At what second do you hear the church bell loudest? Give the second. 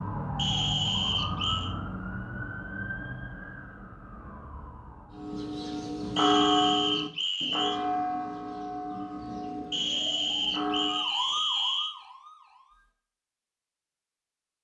6 s.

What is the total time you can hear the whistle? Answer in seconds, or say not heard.
5 s.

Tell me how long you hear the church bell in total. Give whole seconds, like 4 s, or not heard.
6 s.